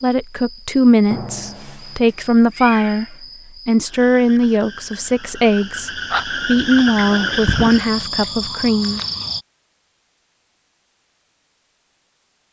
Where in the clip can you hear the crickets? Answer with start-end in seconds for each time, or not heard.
0.0-9.4.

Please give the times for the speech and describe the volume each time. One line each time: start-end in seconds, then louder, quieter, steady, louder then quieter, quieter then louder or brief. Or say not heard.
0.0-9.0 steady.